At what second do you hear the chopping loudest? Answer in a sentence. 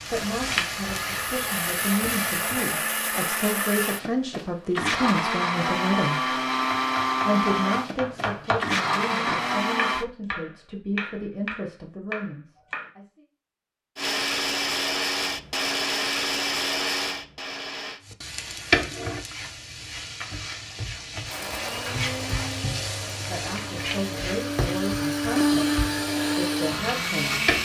The loudest moment of the chopping is at 8 seconds.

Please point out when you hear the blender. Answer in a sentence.
You can hear the blender from 0.0 to 10.1 s, from 13.9 to 18.0 s and from 21.2 to 27.6 s.